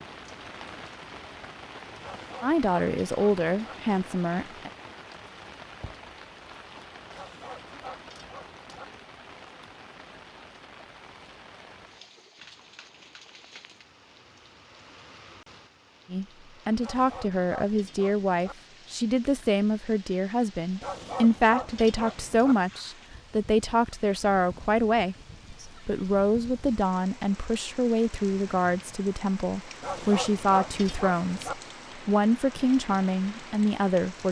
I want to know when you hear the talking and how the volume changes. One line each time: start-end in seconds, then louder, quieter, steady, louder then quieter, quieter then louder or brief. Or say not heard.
2.4-4.7 brief
16.1-34.2 steady.